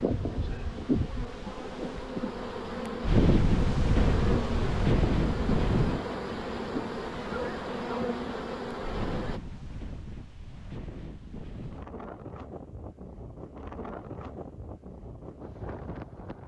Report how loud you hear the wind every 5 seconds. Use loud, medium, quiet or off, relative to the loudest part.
loud, loud, quiet, quiet.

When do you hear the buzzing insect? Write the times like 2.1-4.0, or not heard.
0.0-9.4.